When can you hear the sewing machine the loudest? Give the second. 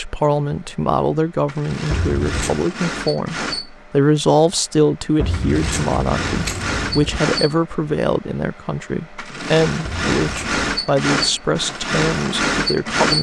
13 s.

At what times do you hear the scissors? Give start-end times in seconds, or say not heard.
1.9-2.6, 5.2-7.2, 9.8-10.7.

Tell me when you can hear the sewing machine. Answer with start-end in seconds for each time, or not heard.
0.0-13.1.